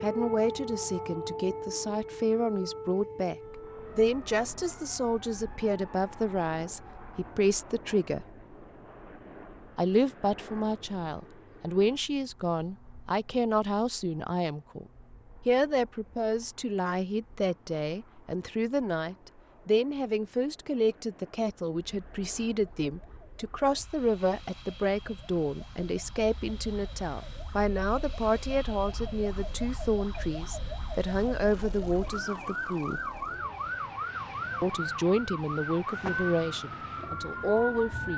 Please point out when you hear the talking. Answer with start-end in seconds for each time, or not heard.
0.0-3.4, 4.0-8.2, 9.8-14.8, 15.4-33.0, 34.6-38.1.